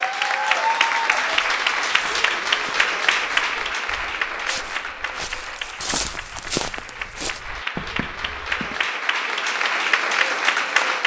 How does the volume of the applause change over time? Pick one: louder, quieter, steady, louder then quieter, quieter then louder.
quieter then louder.